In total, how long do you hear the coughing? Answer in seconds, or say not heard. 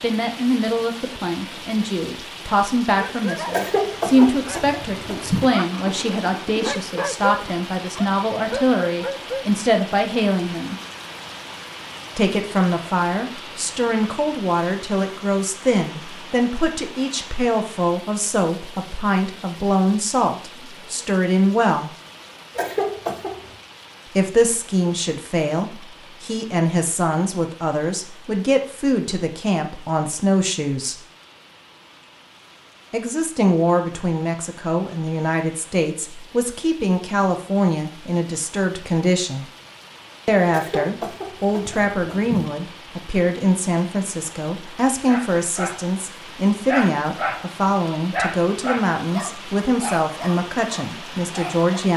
5 s.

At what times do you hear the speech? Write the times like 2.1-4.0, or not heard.
0.0-10.8, 12.2-21.9, 24.1-31.0, 32.9-39.5, 40.2-51.9.